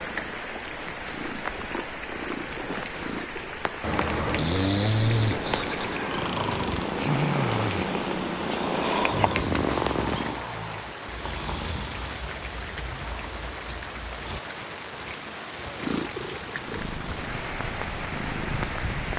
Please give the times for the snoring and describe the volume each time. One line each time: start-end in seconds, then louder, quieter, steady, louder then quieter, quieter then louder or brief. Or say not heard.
3.8-14.4 quieter.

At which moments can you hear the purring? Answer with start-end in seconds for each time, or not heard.
0.0-10.4, 15.6-19.1.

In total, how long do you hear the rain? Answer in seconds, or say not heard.
19 s.